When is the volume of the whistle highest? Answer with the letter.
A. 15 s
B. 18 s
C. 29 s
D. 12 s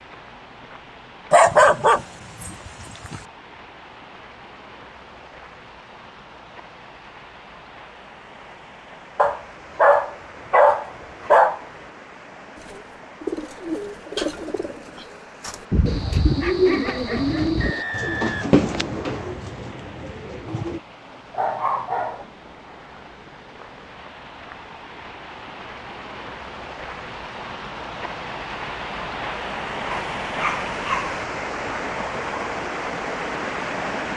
B.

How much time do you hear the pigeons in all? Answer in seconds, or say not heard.
8 s.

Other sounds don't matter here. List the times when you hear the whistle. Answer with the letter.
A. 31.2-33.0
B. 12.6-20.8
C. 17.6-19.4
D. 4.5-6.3
C.